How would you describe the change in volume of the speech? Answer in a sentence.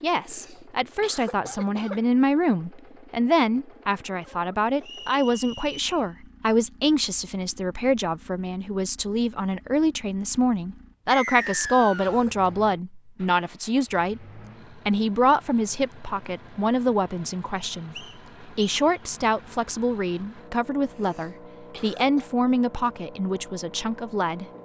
The loudness of the speech stays about the same.